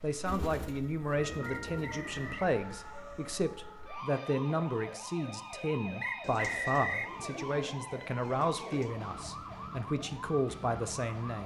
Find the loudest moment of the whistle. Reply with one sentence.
The volume of the whistle peaks at 7 seconds.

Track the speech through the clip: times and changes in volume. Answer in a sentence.
You can hear the speech from 0.0 to 11.4 s, at a steady volume.